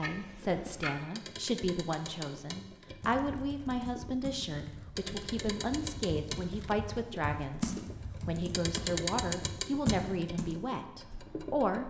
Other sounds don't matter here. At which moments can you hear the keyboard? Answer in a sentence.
You can hear the keyboard from 3.0 to 10.6 s.